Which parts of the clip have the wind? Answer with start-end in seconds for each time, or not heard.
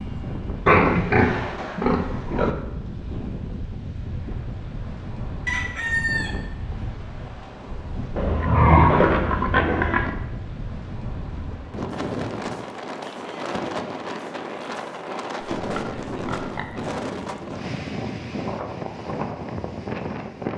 0.0-20.5.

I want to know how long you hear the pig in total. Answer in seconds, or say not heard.
5 s.